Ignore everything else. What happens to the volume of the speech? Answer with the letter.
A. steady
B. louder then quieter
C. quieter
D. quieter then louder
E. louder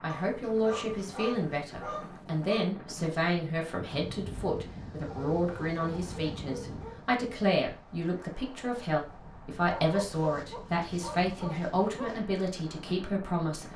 A.